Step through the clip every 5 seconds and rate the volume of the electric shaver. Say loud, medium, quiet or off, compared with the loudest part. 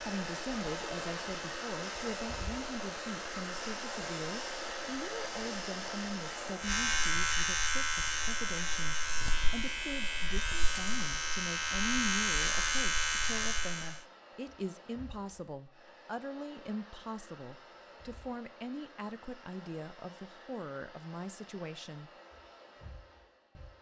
quiet, loud, loud, off, off.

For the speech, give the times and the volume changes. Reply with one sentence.
The speech can be heard from 0.0 to 22.1 s, at a steady volume.